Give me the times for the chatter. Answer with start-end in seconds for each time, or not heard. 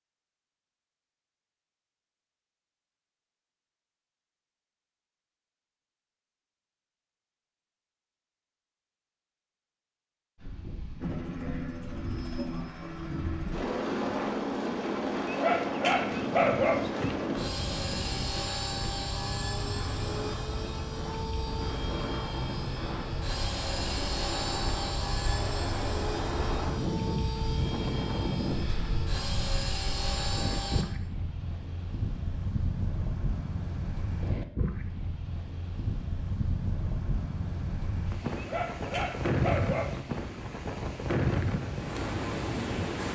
not heard.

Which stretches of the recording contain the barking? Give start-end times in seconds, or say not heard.
15.2-17.1, 38.4-40.0.